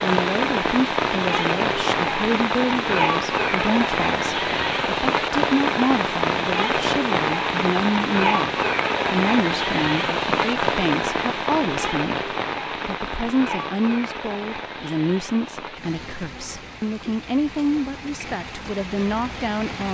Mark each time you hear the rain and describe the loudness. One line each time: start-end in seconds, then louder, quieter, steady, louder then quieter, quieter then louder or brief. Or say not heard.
0.0-19.8 quieter.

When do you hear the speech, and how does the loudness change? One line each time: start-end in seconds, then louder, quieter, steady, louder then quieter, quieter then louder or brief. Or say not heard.
0.0-19.8 steady.